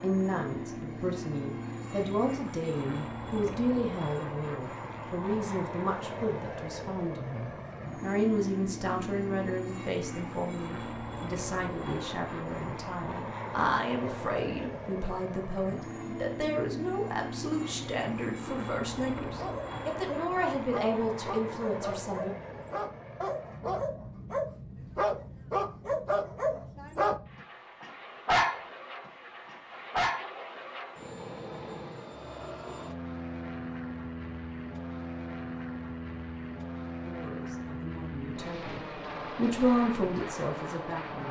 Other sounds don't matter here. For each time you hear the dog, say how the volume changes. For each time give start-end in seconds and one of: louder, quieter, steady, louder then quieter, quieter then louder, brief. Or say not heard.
19.4-27.2 louder
27.8-28.6 brief
29.4-30.2 brief.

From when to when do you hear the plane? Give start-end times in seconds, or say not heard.
0.0-41.2.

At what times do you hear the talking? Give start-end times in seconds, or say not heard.
0.0-22.3, 37.0-41.2.